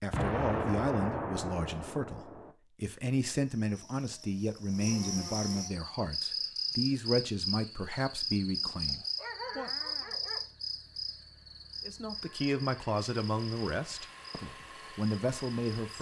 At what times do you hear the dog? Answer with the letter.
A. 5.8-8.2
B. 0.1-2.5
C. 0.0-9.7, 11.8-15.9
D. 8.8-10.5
D.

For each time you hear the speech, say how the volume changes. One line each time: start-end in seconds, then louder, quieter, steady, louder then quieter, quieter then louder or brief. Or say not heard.
0.0-9.7 steady
11.8-15.9 quieter then louder.